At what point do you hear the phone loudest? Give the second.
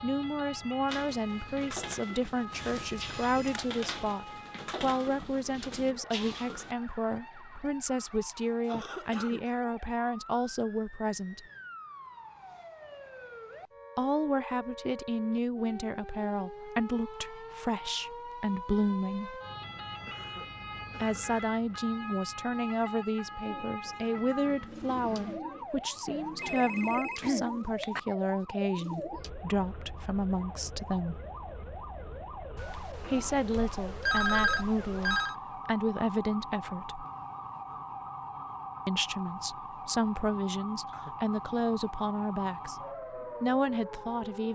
34 s.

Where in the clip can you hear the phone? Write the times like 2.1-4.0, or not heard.
2.5-3.8, 26.1-28.0, 32.5-35.4.